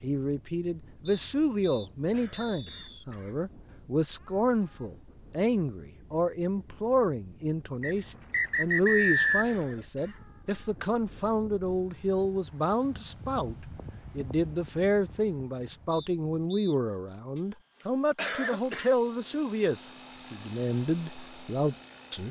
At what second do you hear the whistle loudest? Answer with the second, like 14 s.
9 s.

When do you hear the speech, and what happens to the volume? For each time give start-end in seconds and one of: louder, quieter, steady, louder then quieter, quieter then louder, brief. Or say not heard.
0.0-22.2 steady.